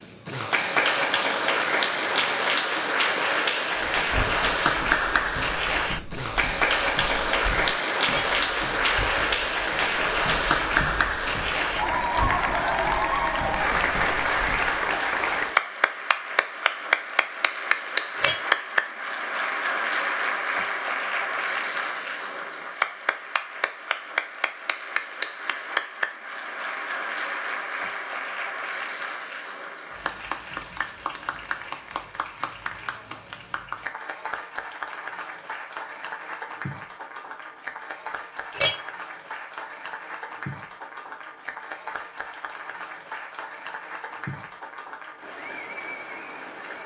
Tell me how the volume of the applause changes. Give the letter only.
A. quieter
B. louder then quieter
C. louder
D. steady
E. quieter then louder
A.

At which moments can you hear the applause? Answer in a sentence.
You can hear the applause from 0.0 to 46.8 s.